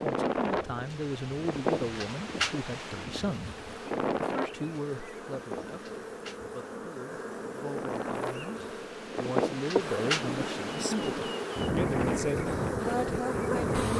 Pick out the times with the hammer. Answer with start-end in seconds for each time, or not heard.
not heard.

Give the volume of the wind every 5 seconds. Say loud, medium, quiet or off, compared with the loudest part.
loud, medium, loud.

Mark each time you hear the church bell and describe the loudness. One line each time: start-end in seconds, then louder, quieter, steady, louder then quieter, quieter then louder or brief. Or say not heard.
not heard.